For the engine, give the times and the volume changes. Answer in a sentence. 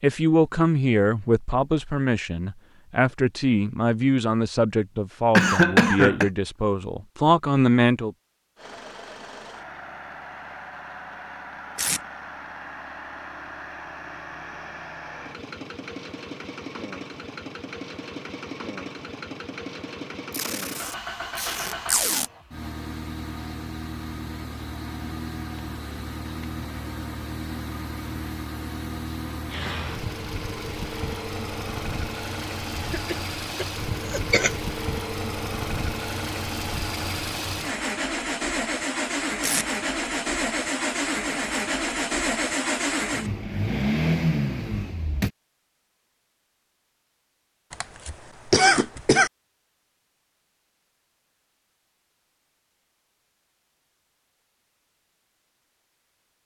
The engine can be heard from 8.6 to 45.3 s, getting louder.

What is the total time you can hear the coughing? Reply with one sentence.
You can hear the coughing for 4 seconds altogether.